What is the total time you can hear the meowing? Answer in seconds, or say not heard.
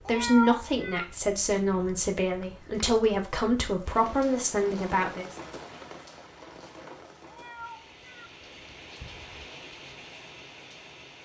2 s.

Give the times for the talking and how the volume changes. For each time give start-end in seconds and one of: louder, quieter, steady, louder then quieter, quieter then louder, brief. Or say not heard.
0.0-5.2 steady.